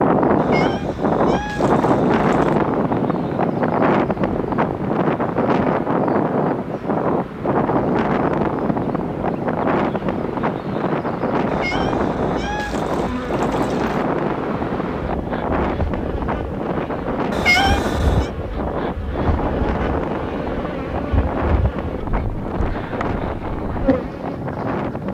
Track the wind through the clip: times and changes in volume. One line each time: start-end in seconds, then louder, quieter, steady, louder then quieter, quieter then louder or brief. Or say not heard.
0.0-25.0 quieter.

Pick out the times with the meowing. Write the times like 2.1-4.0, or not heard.
0.3-2.6, 11.4-14.1, 17.3-18.3.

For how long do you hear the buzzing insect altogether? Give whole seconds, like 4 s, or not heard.
25 s.